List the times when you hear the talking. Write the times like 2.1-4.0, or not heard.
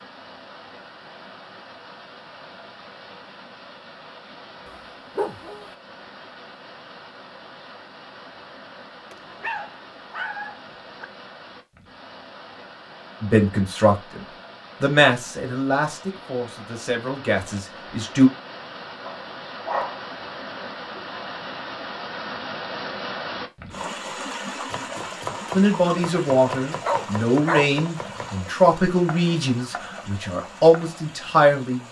13.2-14.2, 14.8-18.3, 25.5-31.8.